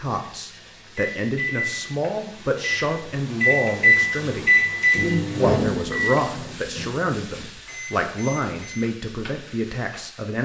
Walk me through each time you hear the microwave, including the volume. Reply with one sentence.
The microwave can be heard from 0.2 to 8.8 s, getting louder then quieter.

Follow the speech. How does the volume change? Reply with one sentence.
The volume of the speech stays about the same.